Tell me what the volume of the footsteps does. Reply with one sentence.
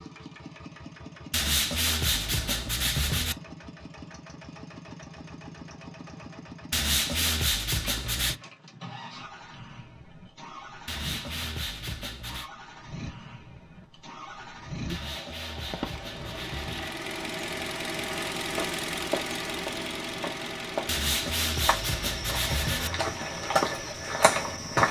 The loudness of the footsteps goes up.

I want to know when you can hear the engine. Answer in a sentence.
The engine can be heard from 0.0 to 24.8 s.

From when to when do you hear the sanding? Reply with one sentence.
You can hear the sanding from 1.3 to 3.4 s, from 6.7 to 8.3 s, from 10.8 to 12.5 s, from 14.8 to 16.9 s and from 20.9 to 22.9 s.